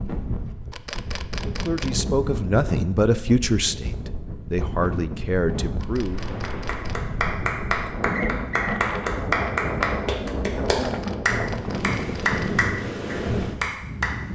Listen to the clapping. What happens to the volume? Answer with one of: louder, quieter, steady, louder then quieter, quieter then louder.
steady.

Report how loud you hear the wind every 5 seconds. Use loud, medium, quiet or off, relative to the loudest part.
medium, loud, loud.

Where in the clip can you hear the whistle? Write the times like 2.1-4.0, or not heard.
8.2-8.8.